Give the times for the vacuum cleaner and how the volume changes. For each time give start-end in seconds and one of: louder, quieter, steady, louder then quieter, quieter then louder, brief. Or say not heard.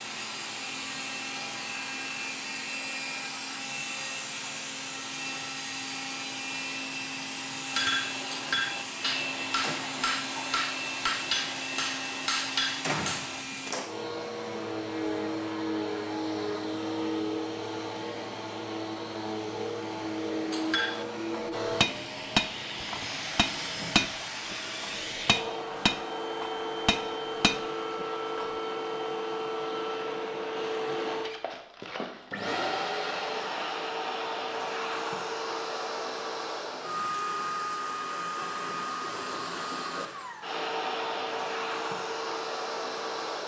0.0-43.4 steady.